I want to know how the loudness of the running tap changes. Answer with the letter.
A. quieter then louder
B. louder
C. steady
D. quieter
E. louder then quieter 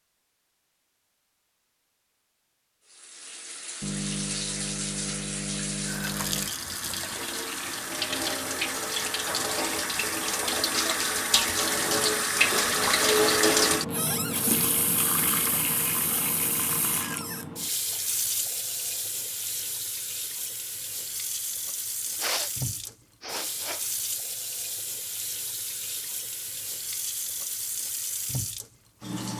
E.